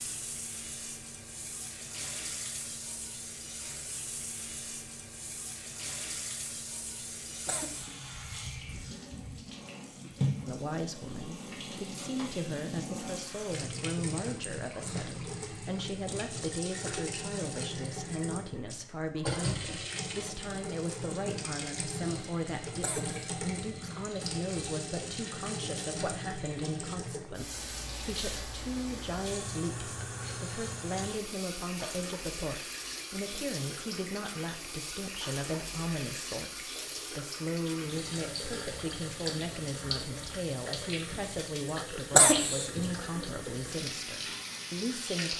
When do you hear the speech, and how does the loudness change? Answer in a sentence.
You can hear the speech from 10.4 to 45.3 s, at a steady volume.